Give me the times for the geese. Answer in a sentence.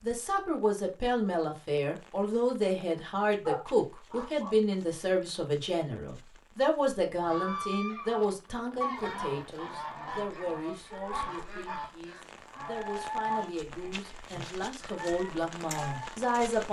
The geese can be heard from 7.0 to 16.1 s.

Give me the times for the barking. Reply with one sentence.
The barking can be heard from 3.5 to 4.6 s.